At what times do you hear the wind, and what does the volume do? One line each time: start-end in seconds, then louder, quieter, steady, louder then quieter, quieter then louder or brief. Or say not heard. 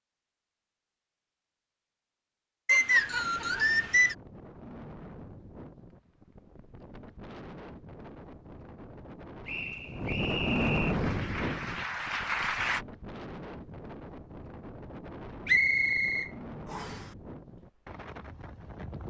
2.8-19.0 louder then quieter.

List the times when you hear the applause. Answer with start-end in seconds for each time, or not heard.
10.9-12.8.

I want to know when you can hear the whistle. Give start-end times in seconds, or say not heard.
2.6-4.2, 9.4-10.9, 15.4-17.0.